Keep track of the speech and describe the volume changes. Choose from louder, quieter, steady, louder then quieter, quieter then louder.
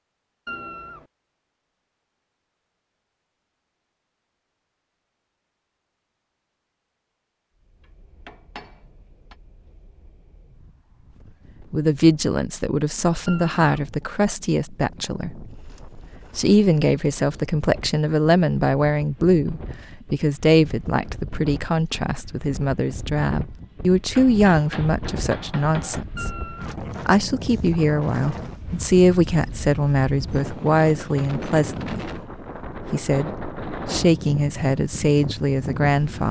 steady.